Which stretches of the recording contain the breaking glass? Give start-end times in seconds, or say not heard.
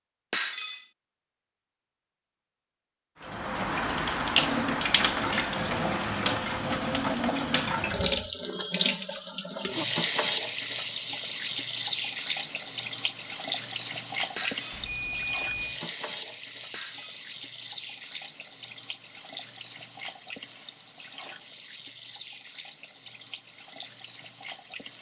0.3-0.8, 14.3-14.8, 16.7-17.2.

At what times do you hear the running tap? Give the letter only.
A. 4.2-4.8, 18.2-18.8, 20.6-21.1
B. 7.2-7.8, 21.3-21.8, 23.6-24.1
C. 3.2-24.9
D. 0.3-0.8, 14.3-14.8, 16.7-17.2
C.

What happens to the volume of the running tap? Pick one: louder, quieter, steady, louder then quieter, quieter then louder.
quieter.